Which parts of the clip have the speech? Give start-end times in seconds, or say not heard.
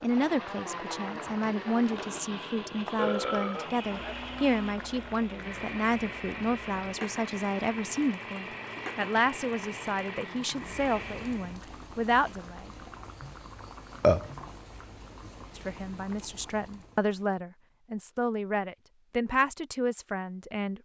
0.0-12.7, 15.6-20.8.